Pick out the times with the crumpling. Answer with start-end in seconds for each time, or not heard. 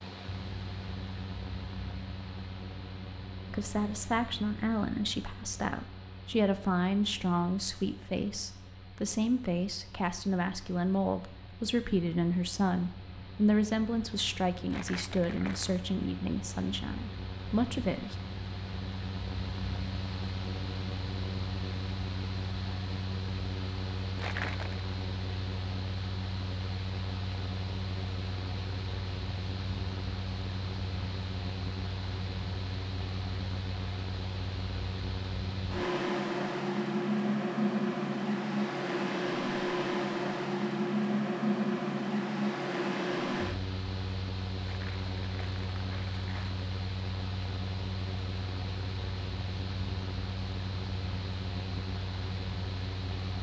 14.7-15.8, 24.1-24.9, 44.6-46.6.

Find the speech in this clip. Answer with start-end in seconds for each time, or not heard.
3.5-18.1.